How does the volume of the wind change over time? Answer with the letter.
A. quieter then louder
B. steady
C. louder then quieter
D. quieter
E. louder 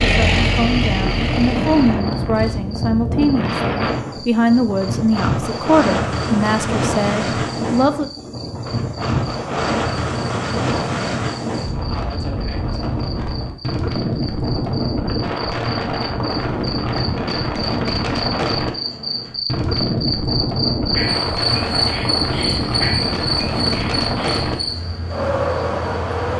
B.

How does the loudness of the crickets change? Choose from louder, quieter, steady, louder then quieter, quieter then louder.
louder.